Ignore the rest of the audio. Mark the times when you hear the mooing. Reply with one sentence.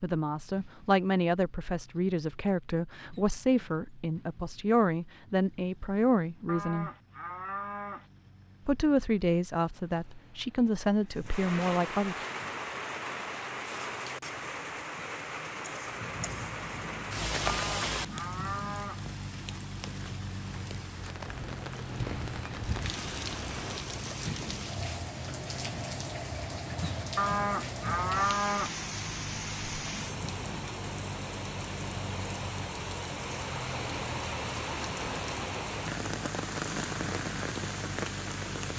The mooing can be heard from 6.5 to 8.1 s, from 17.4 to 19.1 s and from 27.1 to 28.8 s.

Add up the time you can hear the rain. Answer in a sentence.
You can hear the rain for 28 seconds altogether.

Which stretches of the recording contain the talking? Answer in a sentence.
The talking can be heard from 0.0 to 6.9 s and from 8.7 to 12.2 s.